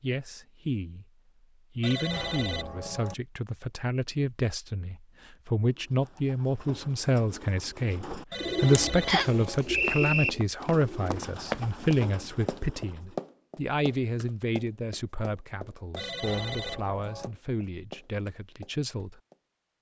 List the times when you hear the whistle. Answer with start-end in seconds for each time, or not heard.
9.1-10.3.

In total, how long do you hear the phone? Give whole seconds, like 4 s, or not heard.
4 s.